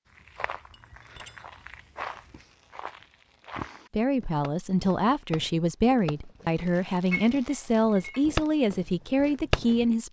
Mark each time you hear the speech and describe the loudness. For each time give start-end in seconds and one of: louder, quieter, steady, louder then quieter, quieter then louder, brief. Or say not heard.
3.9-10.0 steady.